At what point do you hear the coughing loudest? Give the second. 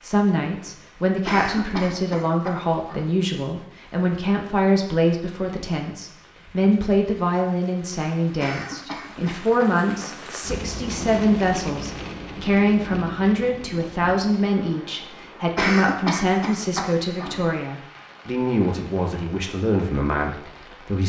16 s.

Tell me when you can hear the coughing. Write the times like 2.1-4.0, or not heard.
1.2-3.1, 8.4-10.2, 15.6-17.4.